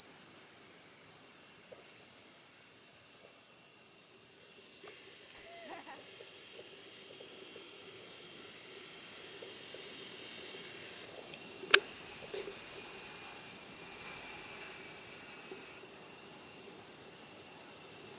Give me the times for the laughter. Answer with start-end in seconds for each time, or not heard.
5.3-6.2.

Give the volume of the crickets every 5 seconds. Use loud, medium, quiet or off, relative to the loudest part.
medium, medium, loud, loud.